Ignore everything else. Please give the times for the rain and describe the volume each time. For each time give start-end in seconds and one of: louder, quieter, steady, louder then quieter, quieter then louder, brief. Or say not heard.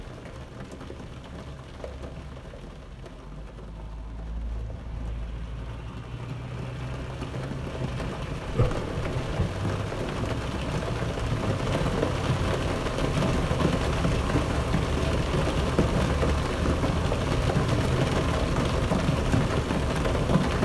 0.0-20.5 louder.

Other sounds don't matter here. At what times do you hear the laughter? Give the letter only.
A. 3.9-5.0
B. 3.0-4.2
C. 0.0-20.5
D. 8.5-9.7
D.